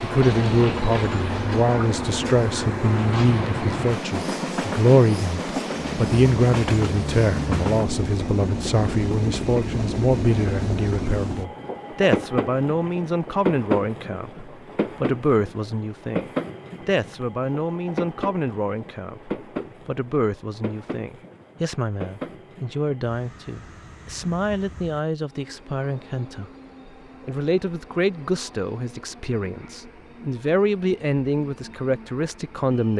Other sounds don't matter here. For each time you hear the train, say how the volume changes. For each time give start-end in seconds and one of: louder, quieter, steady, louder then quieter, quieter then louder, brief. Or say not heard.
0.0-32.9 quieter.